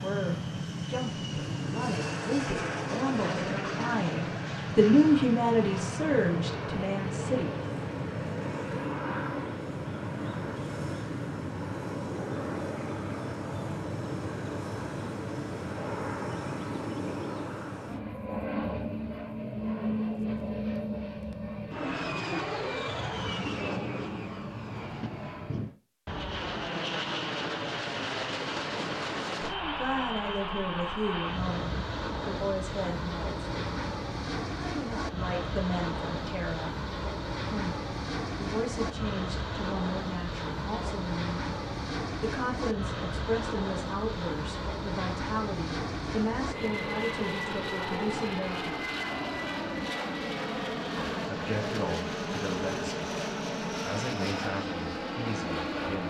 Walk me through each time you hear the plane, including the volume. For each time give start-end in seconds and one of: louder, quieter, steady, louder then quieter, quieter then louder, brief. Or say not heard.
0.0-56.0 steady.